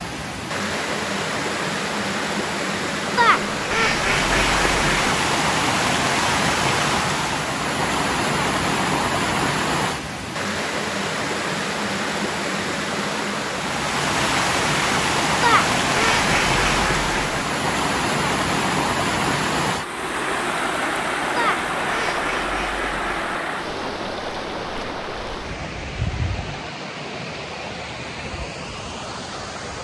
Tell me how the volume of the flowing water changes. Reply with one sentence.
The loudness of the flowing water goes down.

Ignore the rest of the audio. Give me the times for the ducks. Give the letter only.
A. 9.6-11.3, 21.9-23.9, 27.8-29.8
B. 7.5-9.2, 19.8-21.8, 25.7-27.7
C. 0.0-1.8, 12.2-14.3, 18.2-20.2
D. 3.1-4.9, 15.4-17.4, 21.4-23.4
D.